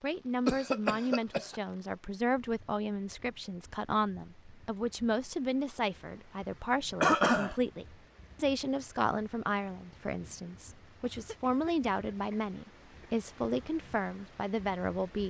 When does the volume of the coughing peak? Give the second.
7 s.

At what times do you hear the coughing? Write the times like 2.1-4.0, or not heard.
0.5-1.6, 7.0-7.5, 11.0-13.1.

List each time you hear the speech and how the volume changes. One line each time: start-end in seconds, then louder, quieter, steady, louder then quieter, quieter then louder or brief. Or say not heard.
0.0-15.2 steady.